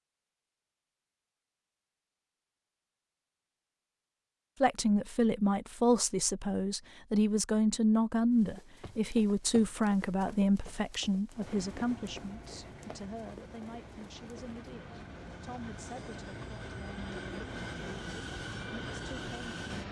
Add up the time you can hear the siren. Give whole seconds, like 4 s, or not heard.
not heard.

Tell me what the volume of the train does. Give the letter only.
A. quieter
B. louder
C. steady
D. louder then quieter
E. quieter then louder
B.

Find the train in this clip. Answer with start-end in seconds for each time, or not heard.
11.3-19.8.